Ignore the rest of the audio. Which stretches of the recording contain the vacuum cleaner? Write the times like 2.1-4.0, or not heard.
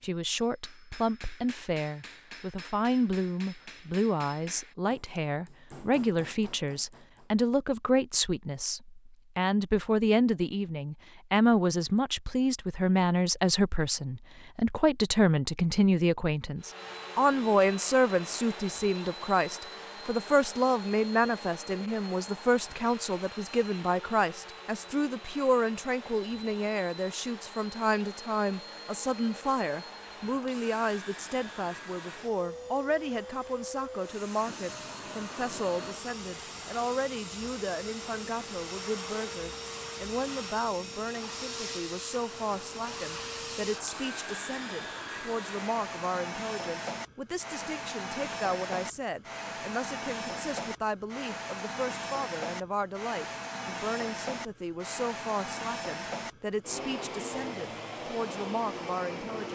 16.6-59.5.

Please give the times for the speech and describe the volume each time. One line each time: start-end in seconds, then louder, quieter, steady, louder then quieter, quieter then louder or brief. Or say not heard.
0.0-59.5 quieter.